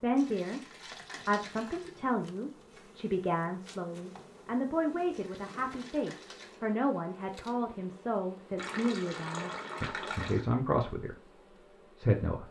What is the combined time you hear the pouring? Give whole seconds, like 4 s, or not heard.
5 s.